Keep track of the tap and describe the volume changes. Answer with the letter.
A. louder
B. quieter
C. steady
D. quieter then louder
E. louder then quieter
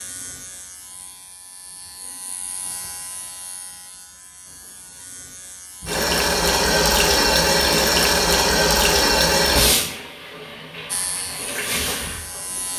D.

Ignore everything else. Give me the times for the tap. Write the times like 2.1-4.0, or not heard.
5.8-12.7.